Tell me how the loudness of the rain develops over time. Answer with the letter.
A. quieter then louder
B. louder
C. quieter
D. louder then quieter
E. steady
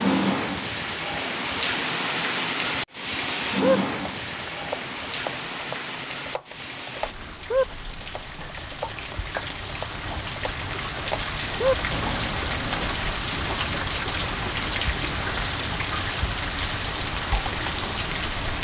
A.